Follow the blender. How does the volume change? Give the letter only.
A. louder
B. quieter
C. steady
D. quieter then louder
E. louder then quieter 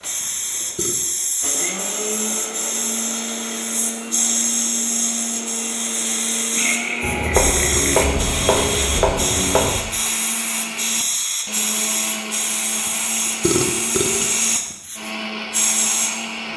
C.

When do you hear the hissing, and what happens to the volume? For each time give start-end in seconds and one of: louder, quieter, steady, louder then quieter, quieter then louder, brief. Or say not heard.
0.0-16.5 steady.